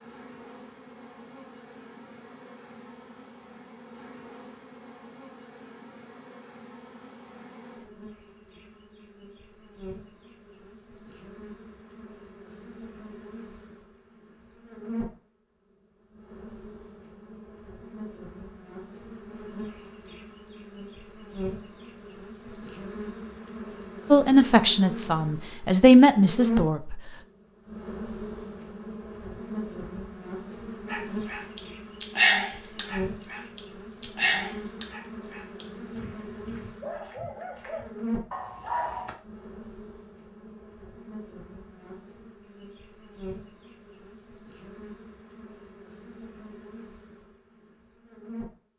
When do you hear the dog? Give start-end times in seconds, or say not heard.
30.9-39.1.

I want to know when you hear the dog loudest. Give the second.
32 s.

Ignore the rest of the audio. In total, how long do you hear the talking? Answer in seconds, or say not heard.
3 s.